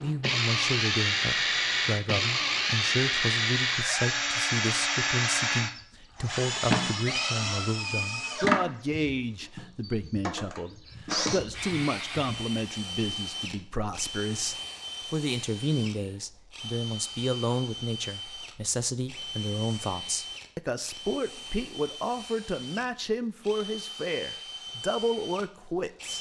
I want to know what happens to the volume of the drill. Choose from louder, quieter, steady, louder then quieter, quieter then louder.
quieter.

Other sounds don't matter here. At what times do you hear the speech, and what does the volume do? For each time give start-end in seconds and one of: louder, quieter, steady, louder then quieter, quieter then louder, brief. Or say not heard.
0.0-26.1 steady.